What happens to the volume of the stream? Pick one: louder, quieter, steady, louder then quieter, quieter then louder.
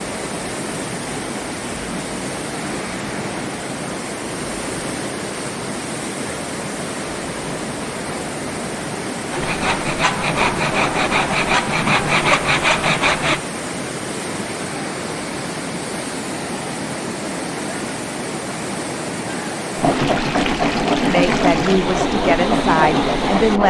steady.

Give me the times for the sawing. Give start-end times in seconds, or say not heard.
9.3-13.4, 19.8-23.6.